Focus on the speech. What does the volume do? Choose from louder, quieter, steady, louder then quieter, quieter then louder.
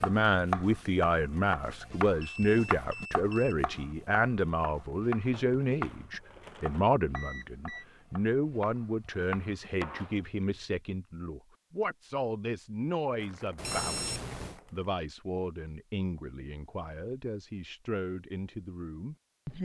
quieter.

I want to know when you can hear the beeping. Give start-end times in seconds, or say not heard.
2.2-3.5, 7.2-7.8, 13.6-14.6.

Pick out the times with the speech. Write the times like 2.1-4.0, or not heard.
0.0-19.6.